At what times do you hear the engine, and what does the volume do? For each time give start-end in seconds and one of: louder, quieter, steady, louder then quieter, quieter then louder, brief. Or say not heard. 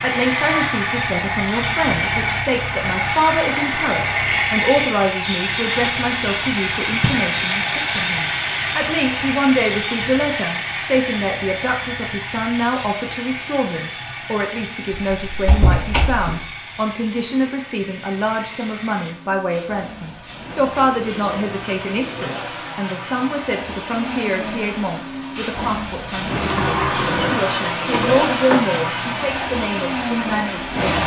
0.0-31.0 quieter then louder.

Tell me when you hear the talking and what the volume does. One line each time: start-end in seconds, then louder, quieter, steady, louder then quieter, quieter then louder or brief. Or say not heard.
0.0-30.9 steady.